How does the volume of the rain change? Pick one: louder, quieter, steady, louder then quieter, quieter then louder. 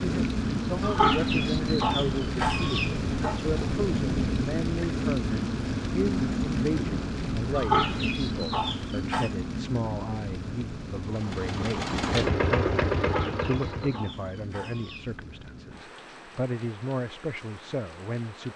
quieter.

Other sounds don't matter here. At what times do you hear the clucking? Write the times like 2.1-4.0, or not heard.
0.8-3.4, 7.5-9.3, 13.0-15.2.